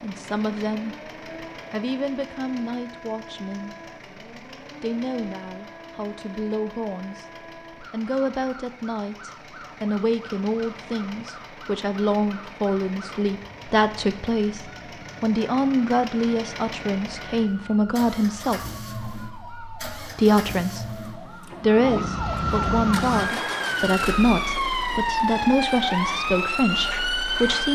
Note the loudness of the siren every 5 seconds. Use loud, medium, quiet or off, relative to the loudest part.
quiet, quiet, quiet, quiet, loud, loud.